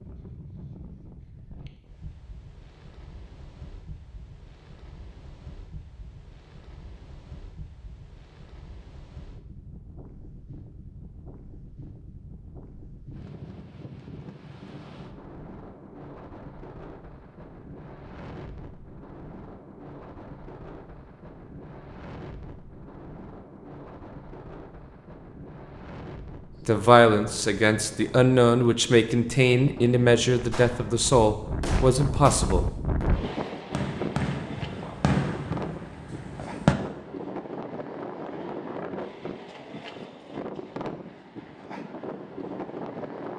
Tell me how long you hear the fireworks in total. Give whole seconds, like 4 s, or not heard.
6 s.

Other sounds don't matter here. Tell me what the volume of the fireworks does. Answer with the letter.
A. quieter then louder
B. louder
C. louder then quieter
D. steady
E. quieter
C.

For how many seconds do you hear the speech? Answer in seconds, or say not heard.
6 s.